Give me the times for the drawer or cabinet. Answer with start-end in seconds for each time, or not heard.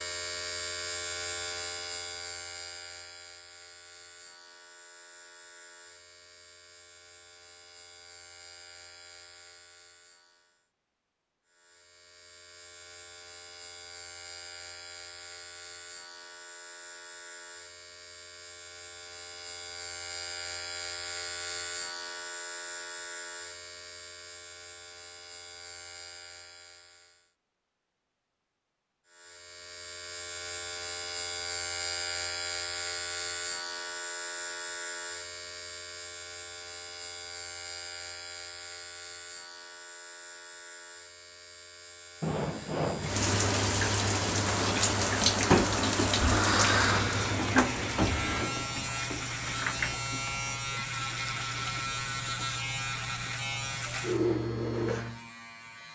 42.2-43.1.